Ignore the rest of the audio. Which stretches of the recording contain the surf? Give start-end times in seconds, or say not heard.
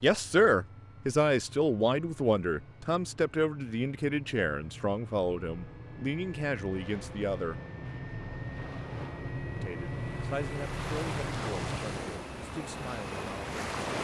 6.7-13.9.